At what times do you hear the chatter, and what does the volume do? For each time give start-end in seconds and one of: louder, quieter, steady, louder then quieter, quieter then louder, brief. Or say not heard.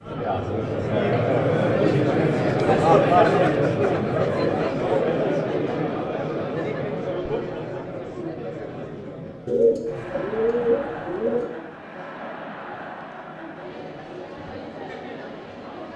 0.0-15.9 quieter.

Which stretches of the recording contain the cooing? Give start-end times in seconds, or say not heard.
9.4-11.5.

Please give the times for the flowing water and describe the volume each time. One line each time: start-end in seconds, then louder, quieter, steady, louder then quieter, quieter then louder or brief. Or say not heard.
not heard.